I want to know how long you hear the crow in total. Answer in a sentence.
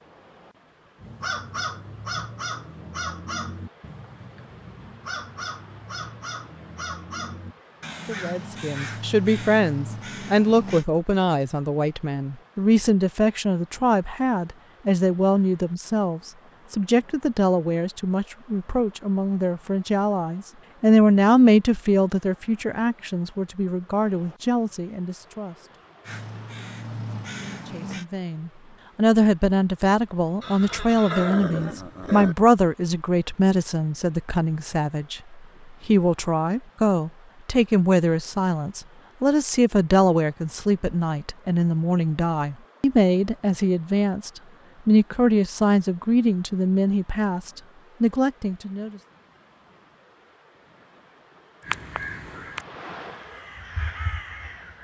You can hear the crow for 15 seconds altogether.